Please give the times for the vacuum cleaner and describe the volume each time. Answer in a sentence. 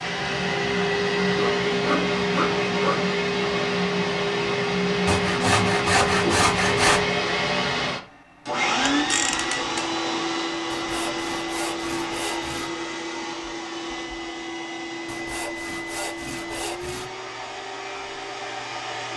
The vacuum cleaner can be heard from 0.0 to 19.1 s, getting quieter.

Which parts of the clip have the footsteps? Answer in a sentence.
You can't hear the footsteps here.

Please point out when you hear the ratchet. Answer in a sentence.
You can hear the ratchet from 8.9 to 9.9 s.